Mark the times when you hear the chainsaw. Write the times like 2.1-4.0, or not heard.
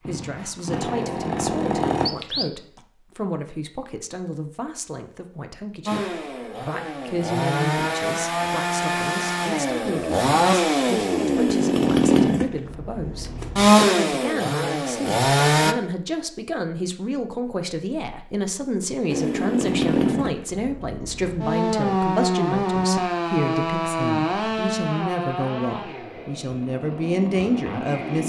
0.0-2.1, 5.8-15.8, 19.1-28.2.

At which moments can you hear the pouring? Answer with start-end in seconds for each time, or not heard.
2.0-2.8.